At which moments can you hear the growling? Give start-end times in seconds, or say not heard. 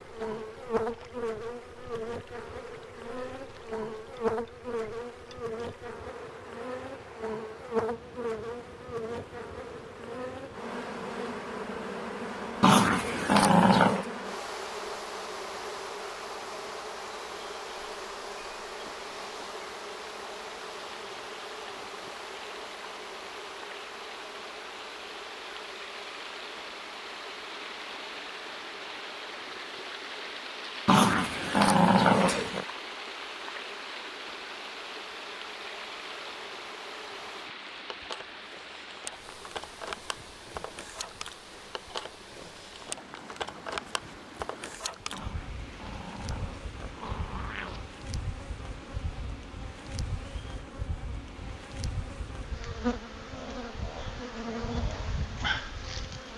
12.6-14.1, 30.9-32.6, 45.1-47.9.